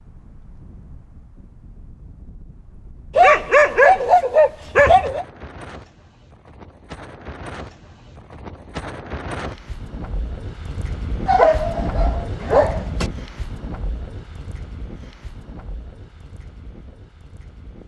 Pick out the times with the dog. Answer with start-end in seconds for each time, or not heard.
3.1-5.2, 11.2-13.1.